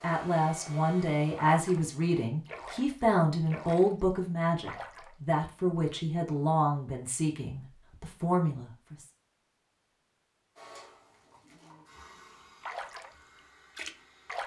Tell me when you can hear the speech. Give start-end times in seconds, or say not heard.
0.0-9.1.